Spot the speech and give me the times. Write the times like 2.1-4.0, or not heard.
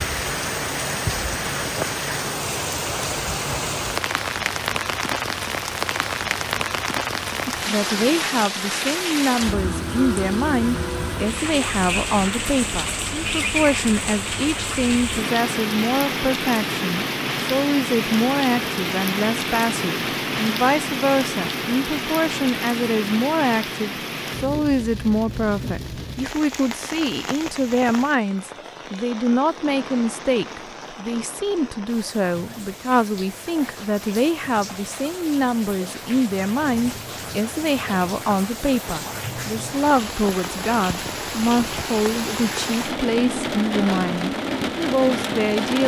7.5-45.8.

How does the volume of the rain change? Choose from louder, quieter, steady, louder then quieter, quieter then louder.
quieter then louder.